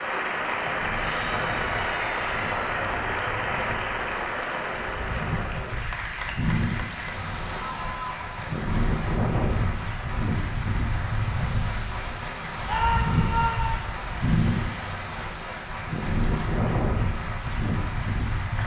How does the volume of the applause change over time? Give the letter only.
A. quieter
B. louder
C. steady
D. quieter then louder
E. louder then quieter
A.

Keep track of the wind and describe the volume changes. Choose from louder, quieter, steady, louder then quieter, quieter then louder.
louder.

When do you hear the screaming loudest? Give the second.
13 s.